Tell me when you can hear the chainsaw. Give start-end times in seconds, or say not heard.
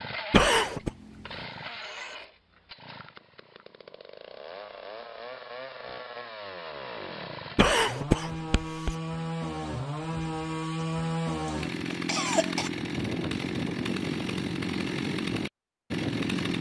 0.0-16.5.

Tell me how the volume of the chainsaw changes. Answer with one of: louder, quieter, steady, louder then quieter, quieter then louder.
louder.